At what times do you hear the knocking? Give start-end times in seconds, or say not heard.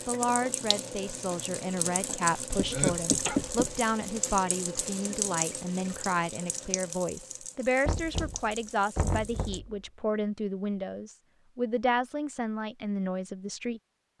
2.6-3.9, 7.8-9.8.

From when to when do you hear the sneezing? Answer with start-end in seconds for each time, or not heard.
2.7-3.4.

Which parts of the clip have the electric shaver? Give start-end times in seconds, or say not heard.
not heard.